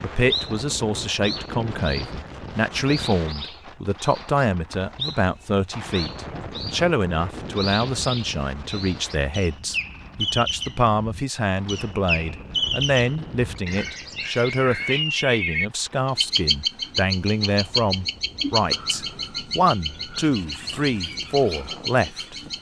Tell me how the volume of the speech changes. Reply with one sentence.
The loudness of the speech stays about the same.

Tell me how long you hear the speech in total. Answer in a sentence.
You can hear the speech for 22 seconds altogether.